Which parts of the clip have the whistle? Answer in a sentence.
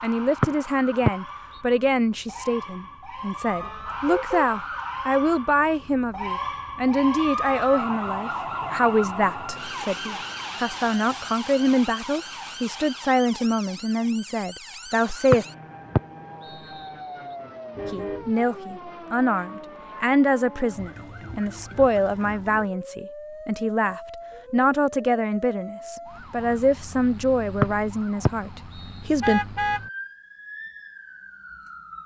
You can hear the whistle from 0.4 to 1.6 s, from 15.3 to 17.4 s and from 27.6 to 29.1 s.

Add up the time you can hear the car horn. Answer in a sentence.
The car horn can be heard for 2 seconds in total.